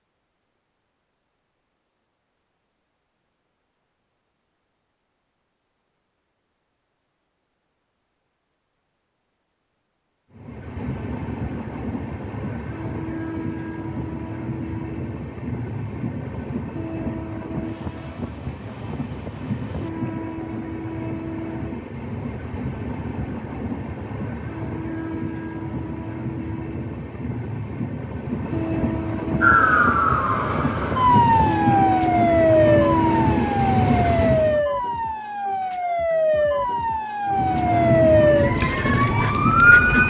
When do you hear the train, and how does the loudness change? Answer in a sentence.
The train can be heard from 10.3 to 34.6 s, getting louder; and briefly from 37.2 to 40.0 s.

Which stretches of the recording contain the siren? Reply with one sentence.
You can hear the siren from 29.4 to 40.0 s.